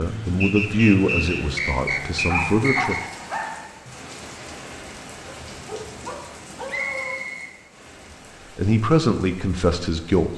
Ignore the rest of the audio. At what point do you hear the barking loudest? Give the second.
3 s.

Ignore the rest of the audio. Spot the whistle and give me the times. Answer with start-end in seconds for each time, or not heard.
0.4-3.0, 6.7-7.5.